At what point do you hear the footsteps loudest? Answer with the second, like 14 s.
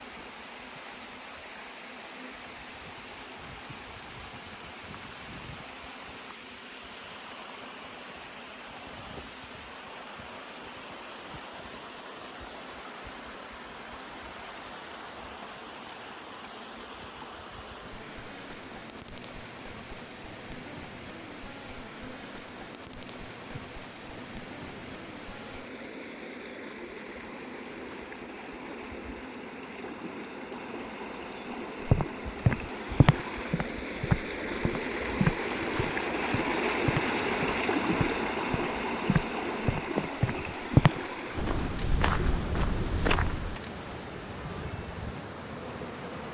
41 s.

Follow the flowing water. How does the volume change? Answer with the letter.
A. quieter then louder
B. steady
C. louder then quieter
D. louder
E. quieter
D.